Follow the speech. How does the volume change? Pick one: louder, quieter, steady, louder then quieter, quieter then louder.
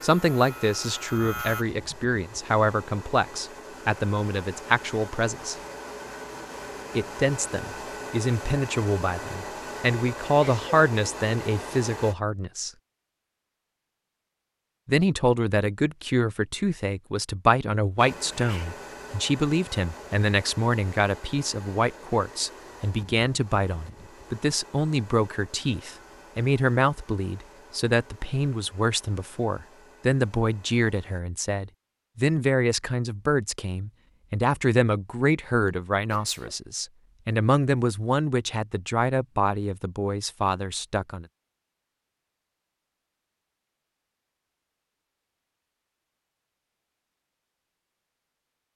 steady.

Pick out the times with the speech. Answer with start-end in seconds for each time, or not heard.
0.0-5.5, 7.0-12.7, 14.8-41.2.